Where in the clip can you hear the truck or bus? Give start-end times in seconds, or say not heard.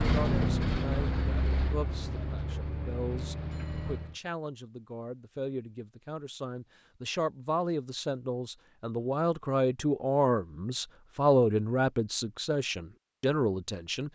0.0-4.2.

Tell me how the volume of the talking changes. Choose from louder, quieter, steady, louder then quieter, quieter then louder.
louder.